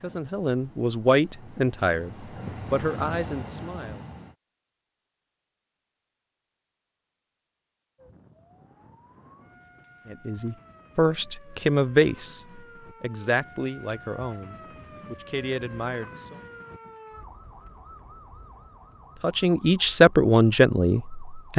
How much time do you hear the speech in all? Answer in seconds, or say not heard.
13 s.